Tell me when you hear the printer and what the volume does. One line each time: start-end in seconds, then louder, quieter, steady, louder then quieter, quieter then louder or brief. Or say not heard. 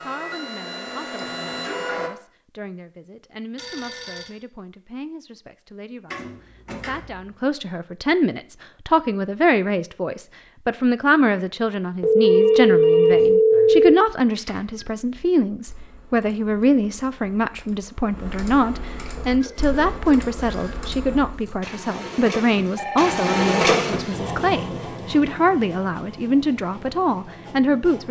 0.0-2.1 brief
19.2-28.0 louder then quieter.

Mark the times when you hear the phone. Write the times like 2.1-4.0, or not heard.
3.5-4.3, 12.0-13.9, 22.8-23.7.